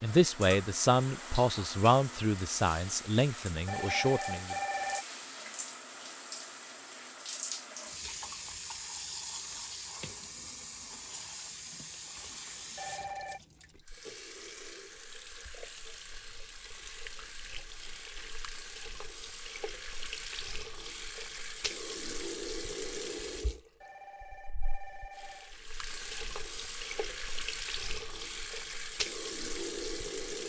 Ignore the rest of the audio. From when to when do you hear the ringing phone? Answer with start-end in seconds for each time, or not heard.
3.6-5.0, 12.8-13.4, 23.8-25.6.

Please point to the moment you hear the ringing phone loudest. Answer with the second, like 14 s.
5 s.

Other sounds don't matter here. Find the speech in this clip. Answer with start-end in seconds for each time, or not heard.
0.0-4.5.